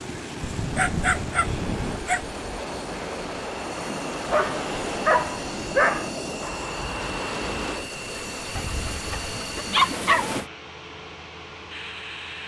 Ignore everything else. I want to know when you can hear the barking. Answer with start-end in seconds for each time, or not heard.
0.4-2.4, 4.3-6.1, 8.6-10.3.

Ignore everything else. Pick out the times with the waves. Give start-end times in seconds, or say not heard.
0.0-10.5.